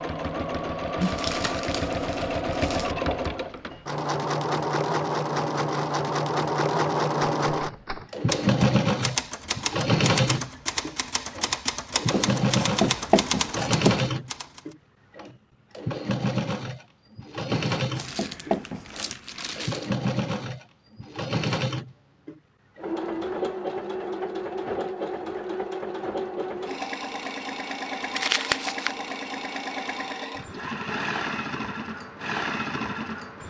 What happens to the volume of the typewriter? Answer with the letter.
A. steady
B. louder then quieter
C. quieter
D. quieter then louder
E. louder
A.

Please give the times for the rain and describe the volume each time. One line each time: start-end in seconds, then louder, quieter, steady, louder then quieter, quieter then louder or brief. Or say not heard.
not heard.